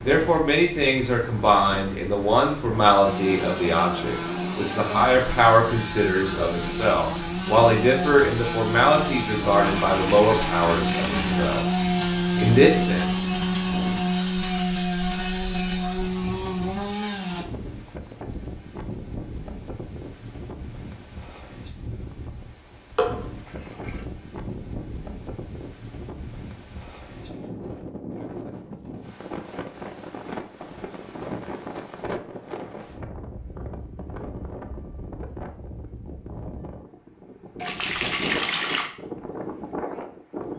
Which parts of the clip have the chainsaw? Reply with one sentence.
The chainsaw can be heard from 3.0 to 17.4 s.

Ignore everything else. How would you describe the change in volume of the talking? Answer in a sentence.
The loudness of the talking stays about the same.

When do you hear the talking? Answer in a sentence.
The talking can be heard from 0.0 to 13.1 s.